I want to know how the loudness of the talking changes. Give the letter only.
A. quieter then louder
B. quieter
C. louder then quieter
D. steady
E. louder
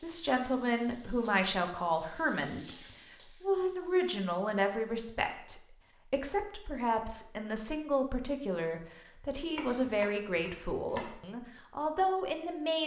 D.